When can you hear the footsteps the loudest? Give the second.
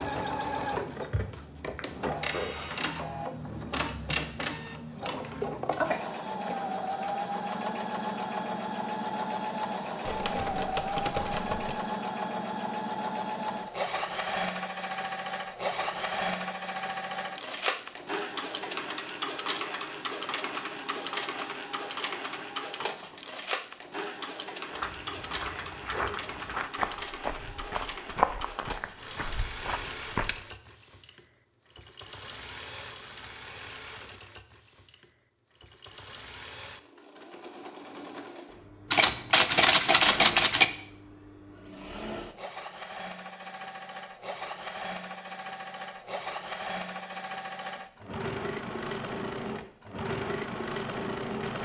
28 s.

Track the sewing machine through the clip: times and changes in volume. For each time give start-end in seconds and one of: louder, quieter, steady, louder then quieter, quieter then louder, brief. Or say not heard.
0.0-51.6 quieter then louder.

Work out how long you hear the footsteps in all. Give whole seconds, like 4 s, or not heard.
6 s.